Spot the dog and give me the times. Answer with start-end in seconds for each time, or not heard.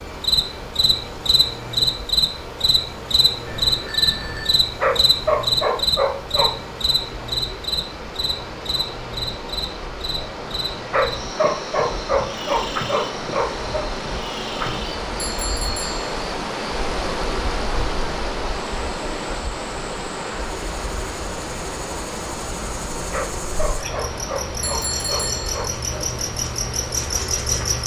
4.8-6.5, 10.9-13.8, 23.1-26.1.